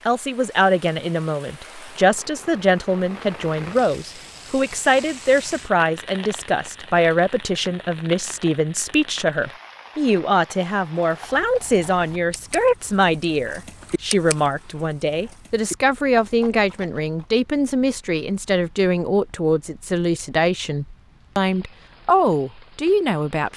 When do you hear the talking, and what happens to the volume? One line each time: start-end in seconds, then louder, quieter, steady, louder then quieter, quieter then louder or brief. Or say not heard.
0.1-23.5 steady.